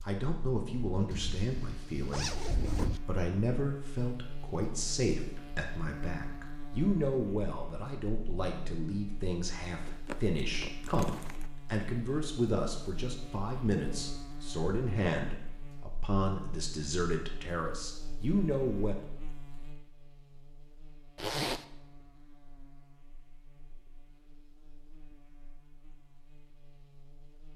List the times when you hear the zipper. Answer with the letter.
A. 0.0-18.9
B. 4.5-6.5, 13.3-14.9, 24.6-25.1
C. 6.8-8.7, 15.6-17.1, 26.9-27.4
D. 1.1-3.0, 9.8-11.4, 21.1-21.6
D.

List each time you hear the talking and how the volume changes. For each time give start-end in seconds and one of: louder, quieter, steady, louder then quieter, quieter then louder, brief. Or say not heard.
0.0-18.9 steady.